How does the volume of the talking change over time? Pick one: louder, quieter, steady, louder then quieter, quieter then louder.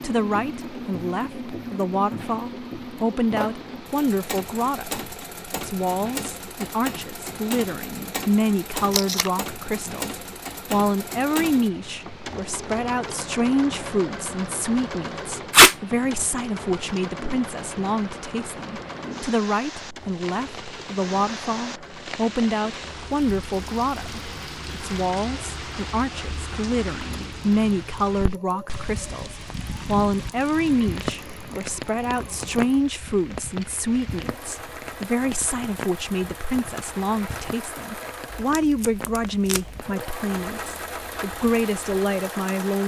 steady.